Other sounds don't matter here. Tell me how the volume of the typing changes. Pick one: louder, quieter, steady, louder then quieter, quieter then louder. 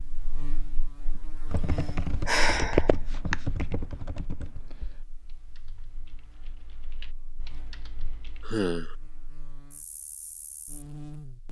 quieter then louder.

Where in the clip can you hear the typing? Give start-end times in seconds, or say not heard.
1.4-8.4.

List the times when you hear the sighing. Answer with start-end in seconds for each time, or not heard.
2.2-3.4, 8.4-8.9.